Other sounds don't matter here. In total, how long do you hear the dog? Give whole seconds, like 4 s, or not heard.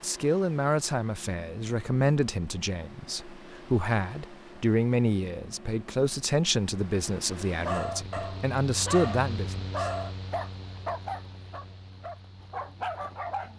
6 s.